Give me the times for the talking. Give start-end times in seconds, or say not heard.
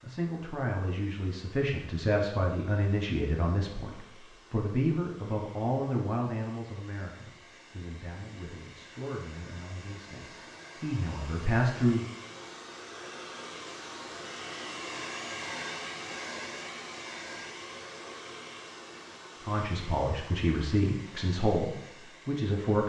0.0-12.1, 19.4-22.8.